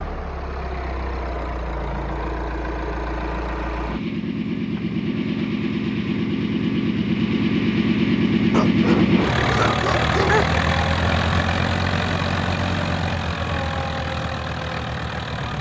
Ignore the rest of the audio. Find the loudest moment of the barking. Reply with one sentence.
The loudest moment of the barking is at 10 seconds.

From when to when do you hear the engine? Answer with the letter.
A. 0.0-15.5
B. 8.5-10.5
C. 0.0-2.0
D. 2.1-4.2
A.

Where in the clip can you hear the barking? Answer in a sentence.
You can hear the barking from 8.5 to 10.5 s.